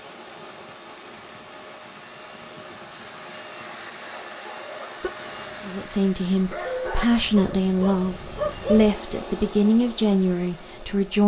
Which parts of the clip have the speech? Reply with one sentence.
You can hear the speech from 5.7 to 11.2 s.